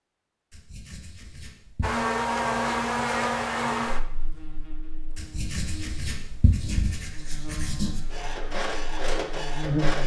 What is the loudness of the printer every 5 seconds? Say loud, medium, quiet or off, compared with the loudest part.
off, loud.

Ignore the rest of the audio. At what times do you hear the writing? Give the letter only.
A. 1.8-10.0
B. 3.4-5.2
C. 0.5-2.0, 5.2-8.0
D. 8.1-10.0
C.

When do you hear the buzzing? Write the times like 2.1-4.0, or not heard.
1.8-10.0.